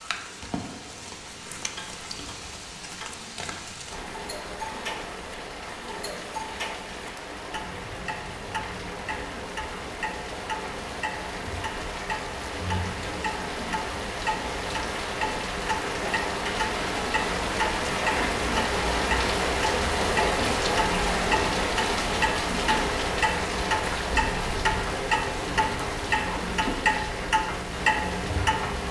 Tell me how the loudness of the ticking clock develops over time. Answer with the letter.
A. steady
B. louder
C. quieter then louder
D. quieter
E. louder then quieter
B.